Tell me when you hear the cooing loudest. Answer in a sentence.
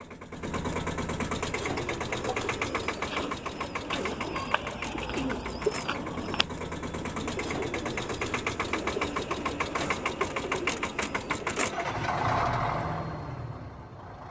The volume of the cooing peaks at 6 seconds.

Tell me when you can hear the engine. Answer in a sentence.
The engine can be heard from 0.0 to 14.2 s.